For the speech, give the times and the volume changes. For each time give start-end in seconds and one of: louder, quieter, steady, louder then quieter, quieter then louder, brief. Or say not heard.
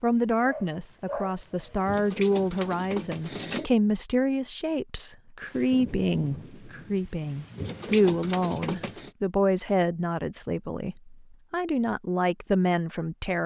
0.0-13.4 steady.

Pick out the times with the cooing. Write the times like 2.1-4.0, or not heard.
1.9-3.7, 7.5-9.1.